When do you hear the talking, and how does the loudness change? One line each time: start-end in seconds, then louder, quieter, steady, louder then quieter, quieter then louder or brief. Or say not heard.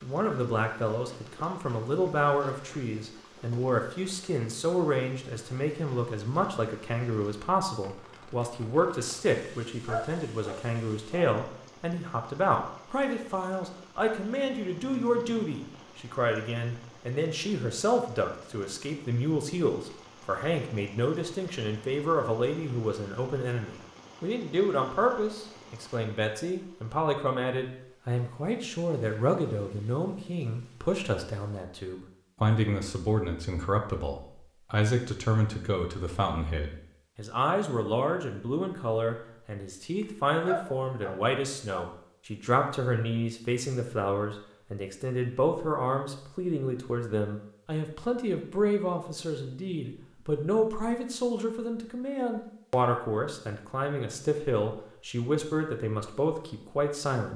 0.0-57.3 steady.